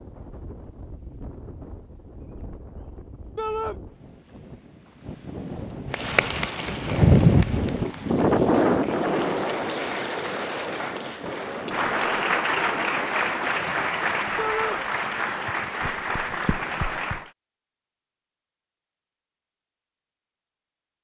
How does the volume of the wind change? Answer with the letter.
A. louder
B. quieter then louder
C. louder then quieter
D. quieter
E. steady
C.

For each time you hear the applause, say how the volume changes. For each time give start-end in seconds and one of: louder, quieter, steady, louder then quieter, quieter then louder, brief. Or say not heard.
5.9-17.3 louder.